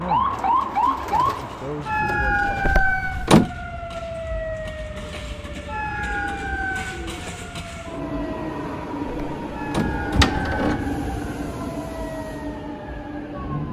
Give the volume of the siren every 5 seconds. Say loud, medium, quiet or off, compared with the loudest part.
loud, medium, medium.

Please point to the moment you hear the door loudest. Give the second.
3 s.